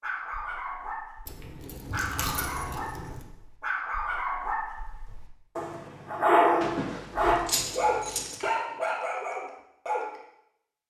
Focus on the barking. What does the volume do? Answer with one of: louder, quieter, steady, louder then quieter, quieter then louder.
louder then quieter.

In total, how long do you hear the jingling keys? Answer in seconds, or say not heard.
4 s.